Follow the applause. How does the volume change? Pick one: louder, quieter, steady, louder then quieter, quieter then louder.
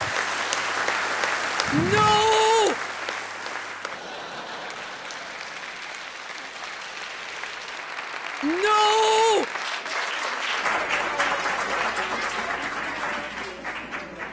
quieter then louder.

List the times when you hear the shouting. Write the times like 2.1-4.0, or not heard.
1.7-2.8, 8.4-9.4.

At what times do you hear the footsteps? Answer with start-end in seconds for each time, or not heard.
not heard.